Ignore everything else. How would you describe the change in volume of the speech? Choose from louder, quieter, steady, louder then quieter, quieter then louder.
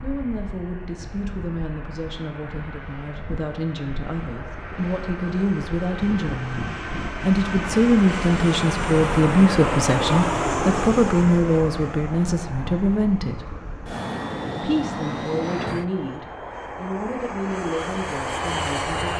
louder then quieter.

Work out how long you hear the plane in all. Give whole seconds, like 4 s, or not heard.
19 s.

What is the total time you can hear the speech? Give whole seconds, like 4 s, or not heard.
18 s.